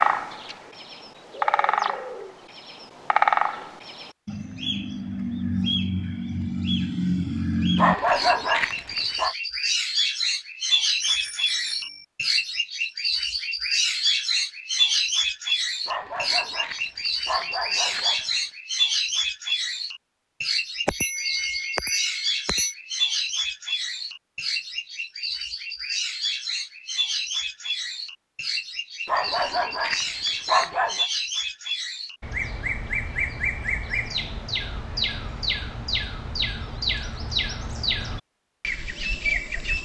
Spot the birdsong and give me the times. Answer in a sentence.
You can hear the birdsong from 0.0 to 39.8 s.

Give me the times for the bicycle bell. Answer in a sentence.
The bicycle bell can be heard from 11.0 to 12.1 s and from 20.9 to 22.8 s.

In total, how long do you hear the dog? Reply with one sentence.
The dog can be heard for 6 seconds in total.